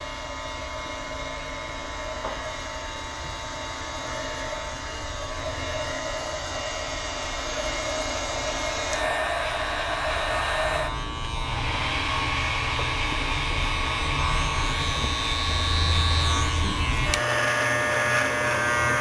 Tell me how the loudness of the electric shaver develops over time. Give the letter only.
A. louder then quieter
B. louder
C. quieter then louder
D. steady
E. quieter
B.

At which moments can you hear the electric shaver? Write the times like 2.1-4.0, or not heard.
0.0-18.9.